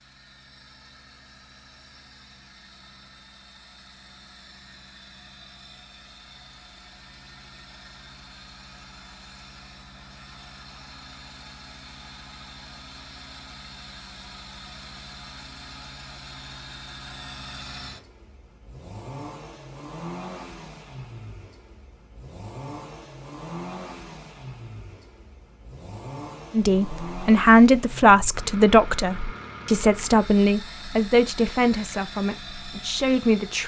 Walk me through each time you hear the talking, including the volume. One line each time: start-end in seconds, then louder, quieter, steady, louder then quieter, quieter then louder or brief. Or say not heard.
26.6-33.6 quieter.